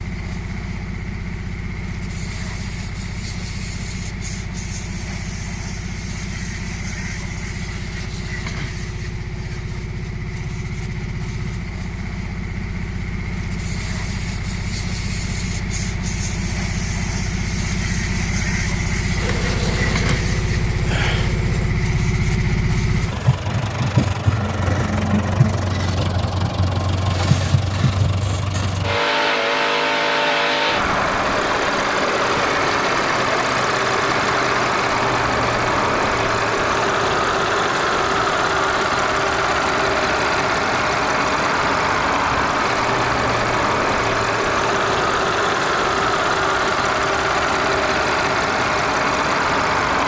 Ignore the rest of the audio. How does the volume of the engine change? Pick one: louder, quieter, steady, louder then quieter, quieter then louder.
louder.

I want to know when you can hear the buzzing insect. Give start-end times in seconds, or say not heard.
19.1-21.8.